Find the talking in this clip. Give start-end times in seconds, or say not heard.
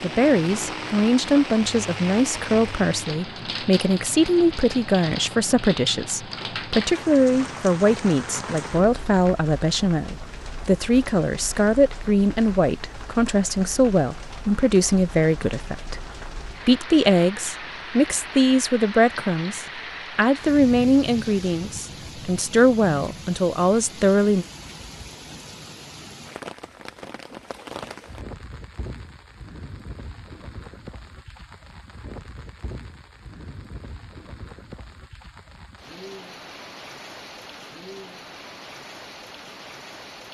0.0-15.9, 16.6-24.4.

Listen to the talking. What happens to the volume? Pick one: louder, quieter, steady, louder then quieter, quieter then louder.
steady.